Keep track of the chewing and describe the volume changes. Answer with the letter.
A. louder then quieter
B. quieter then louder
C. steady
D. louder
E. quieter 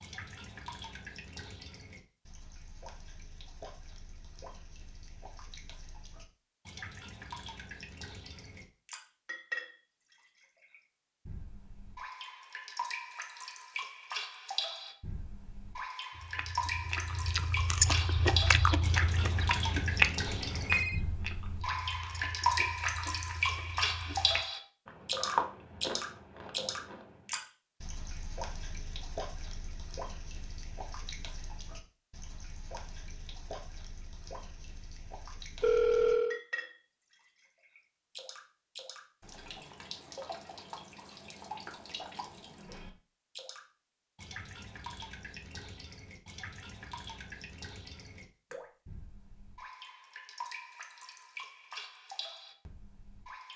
B.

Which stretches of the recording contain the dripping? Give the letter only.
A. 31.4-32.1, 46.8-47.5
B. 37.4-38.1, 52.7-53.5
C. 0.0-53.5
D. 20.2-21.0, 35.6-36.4
C.